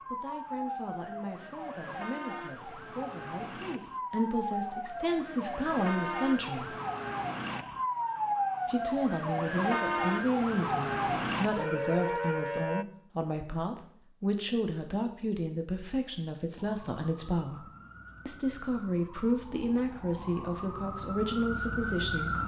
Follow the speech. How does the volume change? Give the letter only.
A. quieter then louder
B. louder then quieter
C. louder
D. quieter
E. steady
C.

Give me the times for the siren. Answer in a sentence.
You can hear the siren from 0.0 to 12.8 s and from 16.6 to 22.4 s.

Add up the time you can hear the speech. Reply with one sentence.
The speech can be heard for 20 seconds in total.